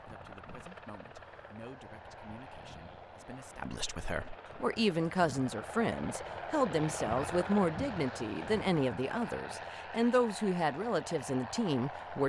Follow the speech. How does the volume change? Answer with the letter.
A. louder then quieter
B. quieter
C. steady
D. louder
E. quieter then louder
D.